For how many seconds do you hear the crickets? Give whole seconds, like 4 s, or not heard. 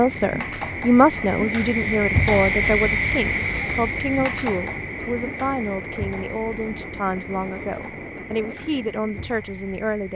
10 s.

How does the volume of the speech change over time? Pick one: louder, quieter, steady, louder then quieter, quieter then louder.
quieter.